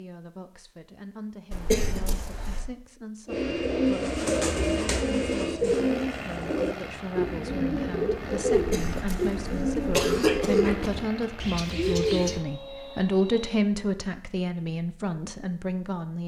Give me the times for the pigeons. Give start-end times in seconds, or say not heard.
3.2-12.4.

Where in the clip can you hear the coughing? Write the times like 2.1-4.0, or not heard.
1.5-2.6, 8.5-10.9.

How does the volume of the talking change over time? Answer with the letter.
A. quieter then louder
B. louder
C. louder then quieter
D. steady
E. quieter
B.